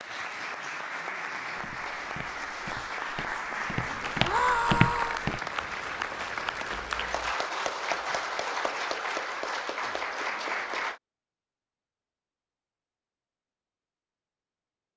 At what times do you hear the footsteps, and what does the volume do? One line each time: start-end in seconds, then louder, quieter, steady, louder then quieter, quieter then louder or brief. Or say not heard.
1.6-7.3 louder then quieter.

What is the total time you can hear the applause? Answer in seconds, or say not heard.
11 s.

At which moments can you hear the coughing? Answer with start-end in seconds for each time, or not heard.
not heard.